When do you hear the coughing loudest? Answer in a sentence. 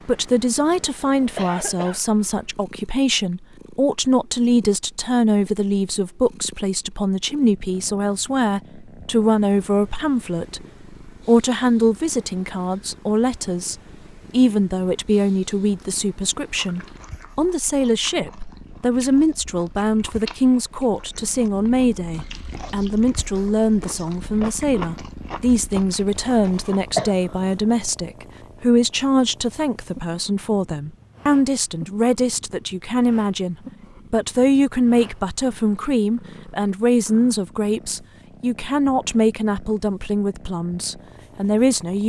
The loudest moment of the coughing is at 27 seconds.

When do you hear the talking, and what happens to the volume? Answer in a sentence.
You can hear the talking from 0.1 to 42.0 s, at a steady volume.